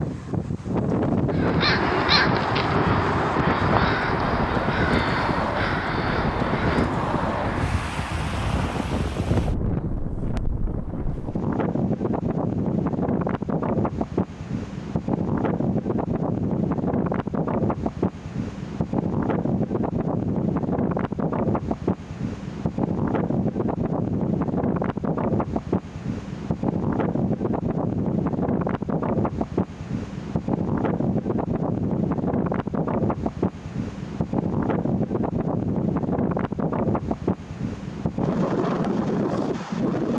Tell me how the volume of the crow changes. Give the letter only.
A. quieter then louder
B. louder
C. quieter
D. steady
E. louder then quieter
C.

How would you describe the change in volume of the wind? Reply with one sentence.
The volume of the wind stays about the same.